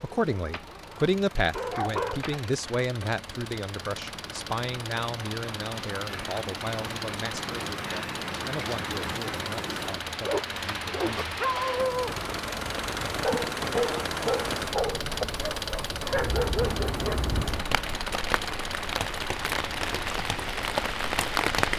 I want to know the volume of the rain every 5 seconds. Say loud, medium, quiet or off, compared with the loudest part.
quiet, medium, medium, medium, loud.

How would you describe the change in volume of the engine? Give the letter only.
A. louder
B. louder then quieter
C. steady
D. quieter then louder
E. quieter
A.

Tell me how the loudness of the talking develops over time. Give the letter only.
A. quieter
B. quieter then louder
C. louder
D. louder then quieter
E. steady
A.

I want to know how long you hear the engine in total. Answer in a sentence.
The engine can be heard for 20 seconds in total.